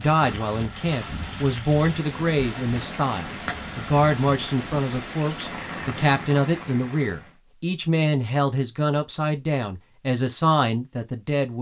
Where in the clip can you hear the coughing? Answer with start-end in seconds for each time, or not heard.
not heard.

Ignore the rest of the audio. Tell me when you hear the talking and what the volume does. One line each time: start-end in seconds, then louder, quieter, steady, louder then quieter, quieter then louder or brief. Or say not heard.
0.0-11.5 steady.